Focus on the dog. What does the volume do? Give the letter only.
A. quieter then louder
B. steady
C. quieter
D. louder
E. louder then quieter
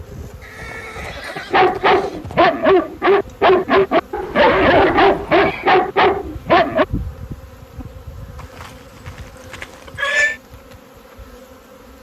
B.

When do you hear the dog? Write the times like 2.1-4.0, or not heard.
1.4-6.8.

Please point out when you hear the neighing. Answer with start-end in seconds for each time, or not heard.
0.4-2.4, 4.2-5.7, 8.3-10.4.